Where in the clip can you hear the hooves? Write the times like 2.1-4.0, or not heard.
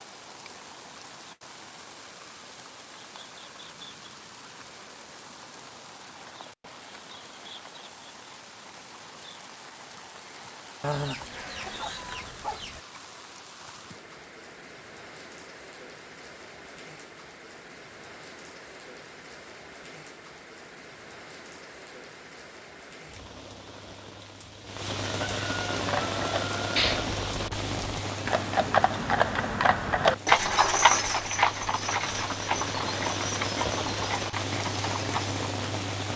25.8-35.4.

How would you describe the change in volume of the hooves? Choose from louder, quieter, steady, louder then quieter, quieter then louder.
louder then quieter.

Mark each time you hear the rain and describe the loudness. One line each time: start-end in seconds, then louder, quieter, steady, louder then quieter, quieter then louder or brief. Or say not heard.
0.0-36.1 louder.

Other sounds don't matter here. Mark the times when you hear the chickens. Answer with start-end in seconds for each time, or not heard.
10.8-12.8, 25.1-26.9.